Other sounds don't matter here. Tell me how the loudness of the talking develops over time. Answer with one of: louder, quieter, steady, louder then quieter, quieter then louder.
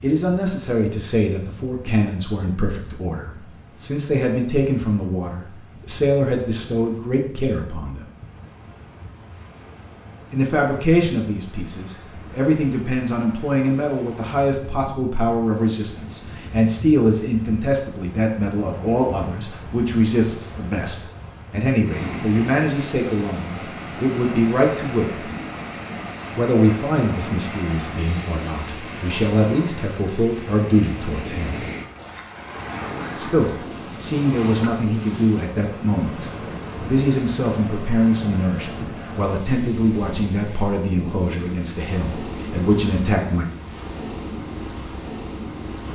steady.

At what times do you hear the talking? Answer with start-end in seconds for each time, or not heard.
0.0-8.1, 10.3-25.2, 26.4-31.6, 33.1-43.5.